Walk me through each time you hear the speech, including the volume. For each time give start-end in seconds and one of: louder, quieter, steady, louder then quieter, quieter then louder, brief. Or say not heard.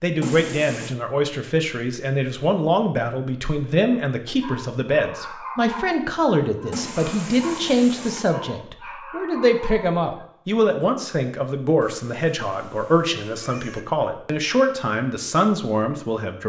0.0-16.4 steady.